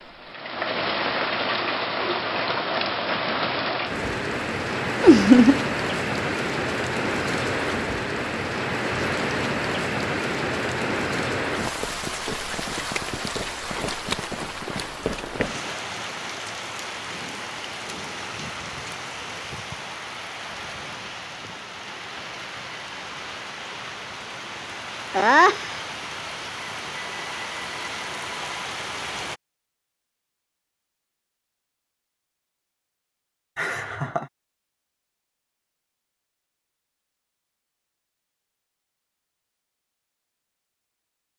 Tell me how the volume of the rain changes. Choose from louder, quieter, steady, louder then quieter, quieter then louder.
quieter.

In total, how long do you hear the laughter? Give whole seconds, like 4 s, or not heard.
2 s.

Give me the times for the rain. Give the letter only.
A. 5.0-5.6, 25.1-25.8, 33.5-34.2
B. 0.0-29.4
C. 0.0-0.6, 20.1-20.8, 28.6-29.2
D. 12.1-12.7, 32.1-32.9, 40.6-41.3
B.